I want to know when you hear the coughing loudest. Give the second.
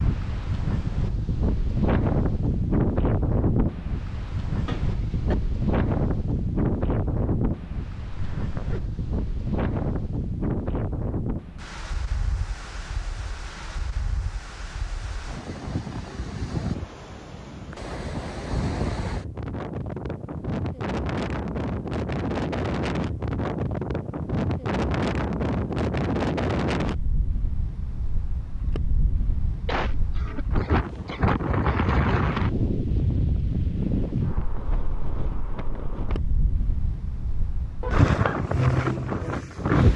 30 s.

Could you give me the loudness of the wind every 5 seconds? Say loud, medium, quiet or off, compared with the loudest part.
loud, loud, medium, medium, loud, loud, loud, loud.